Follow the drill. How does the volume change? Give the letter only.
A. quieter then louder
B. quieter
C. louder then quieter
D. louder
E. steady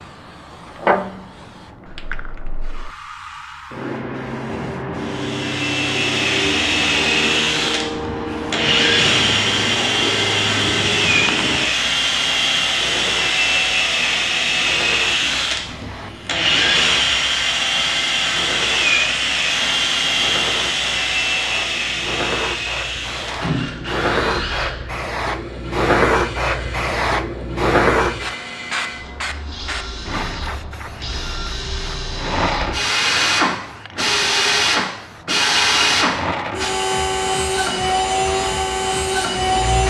A.